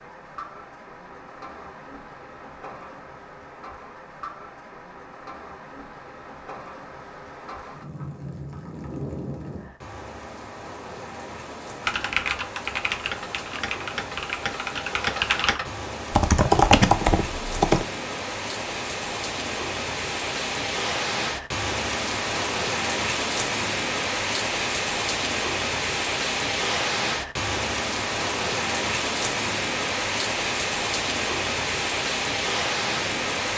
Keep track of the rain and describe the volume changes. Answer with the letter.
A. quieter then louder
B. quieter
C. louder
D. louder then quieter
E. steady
C.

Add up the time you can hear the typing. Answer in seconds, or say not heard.
6 s.